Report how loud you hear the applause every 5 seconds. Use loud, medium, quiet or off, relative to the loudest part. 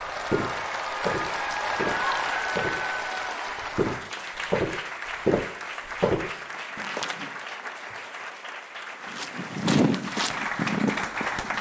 loud, medium, loud.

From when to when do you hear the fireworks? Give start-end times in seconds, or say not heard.
not heard.